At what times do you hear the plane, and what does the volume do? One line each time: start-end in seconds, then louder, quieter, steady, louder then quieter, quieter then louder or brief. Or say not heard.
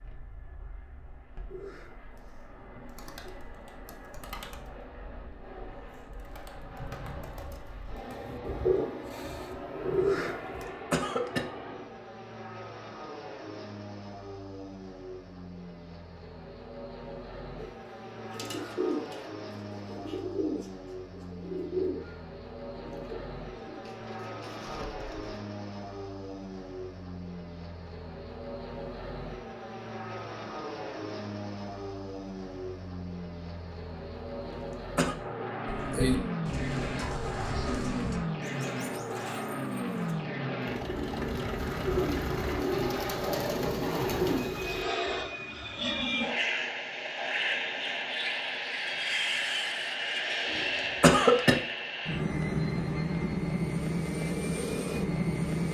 0.0-55.6 louder.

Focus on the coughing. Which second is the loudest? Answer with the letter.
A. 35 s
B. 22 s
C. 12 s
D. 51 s
D.